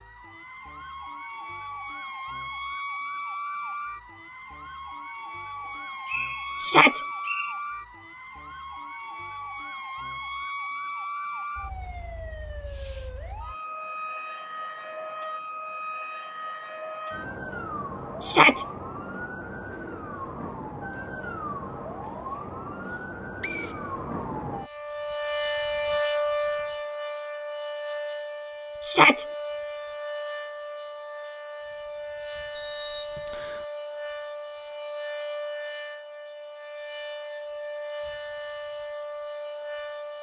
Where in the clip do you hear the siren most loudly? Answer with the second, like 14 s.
26 s.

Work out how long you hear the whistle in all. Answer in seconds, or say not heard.
4 s.